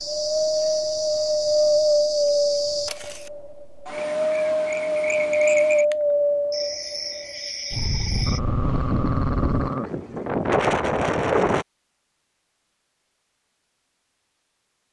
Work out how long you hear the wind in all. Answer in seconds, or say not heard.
12 s.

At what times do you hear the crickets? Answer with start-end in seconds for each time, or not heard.
0.0-8.4.